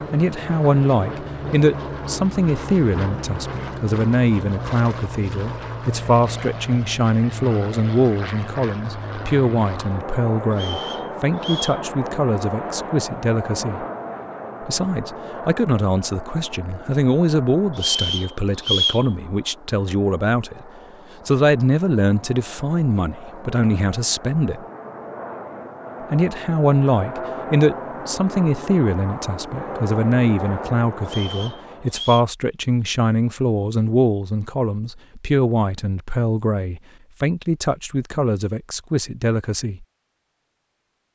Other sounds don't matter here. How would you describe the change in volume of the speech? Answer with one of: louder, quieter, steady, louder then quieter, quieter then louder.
steady.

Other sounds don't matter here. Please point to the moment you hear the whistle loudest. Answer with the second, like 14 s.
19 s.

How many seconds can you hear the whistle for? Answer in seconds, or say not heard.
4 s.